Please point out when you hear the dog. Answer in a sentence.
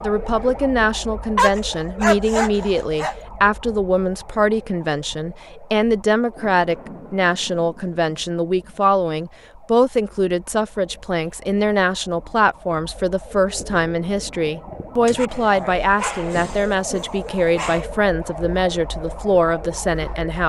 You can hear the dog from 1.4 to 3.1 s and from 15.1 to 17.9 s.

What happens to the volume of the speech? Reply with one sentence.
The volume of the speech stays about the same.